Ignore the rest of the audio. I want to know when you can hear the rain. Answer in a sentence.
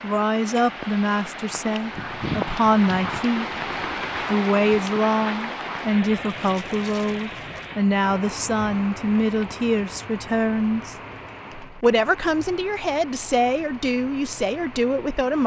The rain can be heard from 0.0 to 15.4 s.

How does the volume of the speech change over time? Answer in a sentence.
The volume of the speech stays about the same.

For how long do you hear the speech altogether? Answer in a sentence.
The speech can be heard for 14 seconds in total.